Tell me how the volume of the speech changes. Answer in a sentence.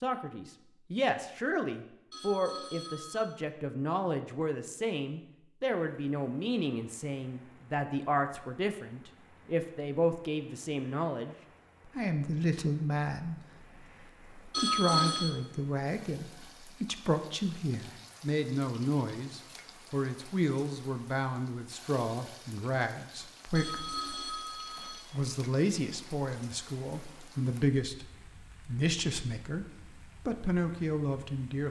The volume of the speech stays about the same.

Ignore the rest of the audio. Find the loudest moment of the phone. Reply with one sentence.
The volume of the phone peaks at 15 seconds.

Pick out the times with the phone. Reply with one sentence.
The phone can be heard from 2.1 to 3.3 s, from 14.5 to 15.3 s and from 23.6 to 25.0 s.